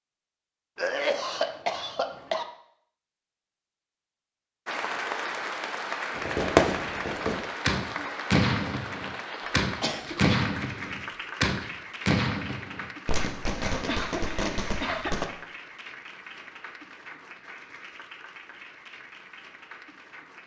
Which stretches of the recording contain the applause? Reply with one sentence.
The applause can be heard from 4.7 to 20.4 s.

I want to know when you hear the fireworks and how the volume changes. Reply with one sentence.
The fireworks can be heard from 6.2 to 15.2 s, getting quieter.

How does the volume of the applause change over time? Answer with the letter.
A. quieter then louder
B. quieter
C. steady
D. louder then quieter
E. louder
B.